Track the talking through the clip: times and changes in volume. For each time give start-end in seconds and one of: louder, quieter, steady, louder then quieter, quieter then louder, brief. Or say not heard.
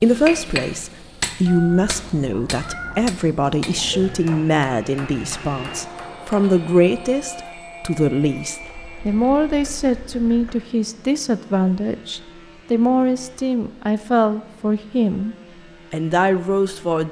0.0-17.0 steady.